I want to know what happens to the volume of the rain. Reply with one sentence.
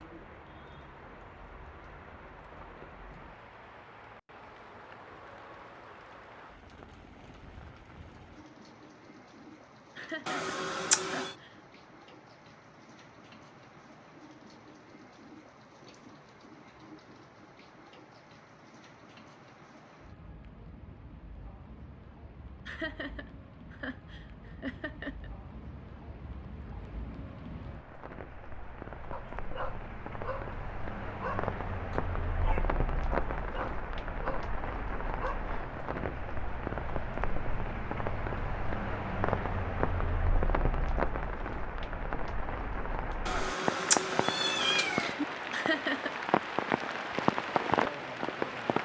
The volume of the rain goes up.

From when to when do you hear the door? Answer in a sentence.
The door can't be heard in this clip.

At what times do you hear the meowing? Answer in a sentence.
The meowing can be heard from 10.2 to 11.3 s and from 43.2 to 45.2 s.